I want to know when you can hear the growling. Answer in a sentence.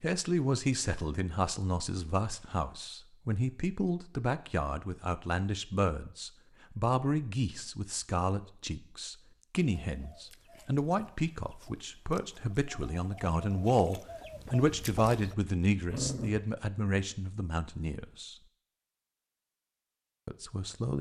You can hear the growling from 15.8 to 16.4 s.